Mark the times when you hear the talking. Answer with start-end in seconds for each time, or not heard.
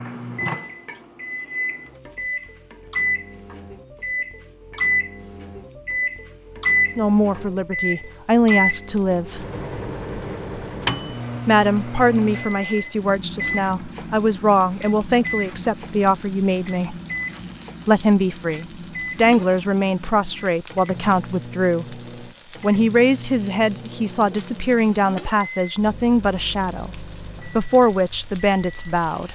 7.0-9.4, 11.4-16.9, 17.9-21.9, 22.6-29.2.